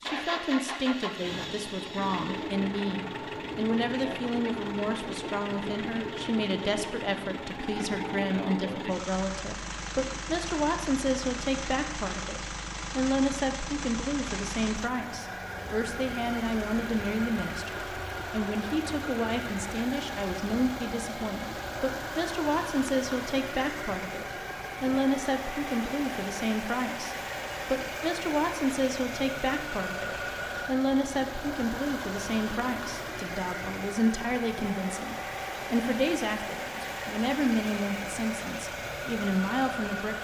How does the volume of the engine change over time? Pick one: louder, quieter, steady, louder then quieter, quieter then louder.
steady.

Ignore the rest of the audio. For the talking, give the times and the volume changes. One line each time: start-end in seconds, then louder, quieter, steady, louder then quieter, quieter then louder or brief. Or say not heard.
0.0-40.1 steady.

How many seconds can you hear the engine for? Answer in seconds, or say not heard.
40 s.